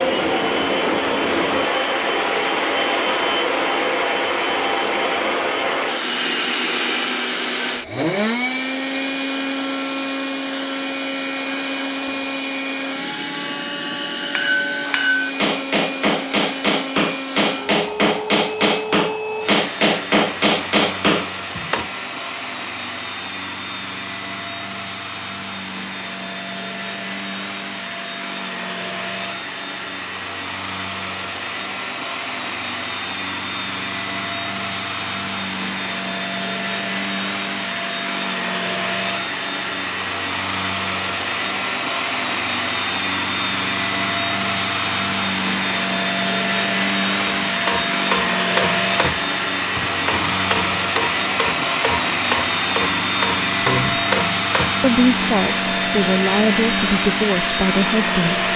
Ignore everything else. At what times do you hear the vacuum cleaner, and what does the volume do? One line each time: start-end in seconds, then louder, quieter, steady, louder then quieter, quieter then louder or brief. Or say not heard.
0.0-58.5 quieter then louder.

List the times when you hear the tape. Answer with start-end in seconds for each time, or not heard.
not heard.